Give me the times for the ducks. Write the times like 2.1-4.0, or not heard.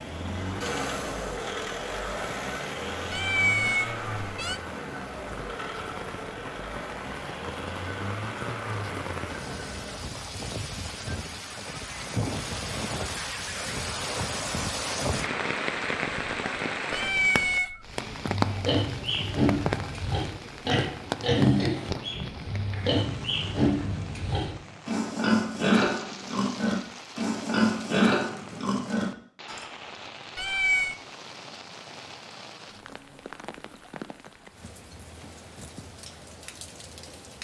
not heard.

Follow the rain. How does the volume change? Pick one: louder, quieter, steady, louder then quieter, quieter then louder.
louder then quieter.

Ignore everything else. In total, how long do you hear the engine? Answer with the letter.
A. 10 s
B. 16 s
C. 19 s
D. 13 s
A.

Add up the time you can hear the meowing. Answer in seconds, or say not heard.
3 s.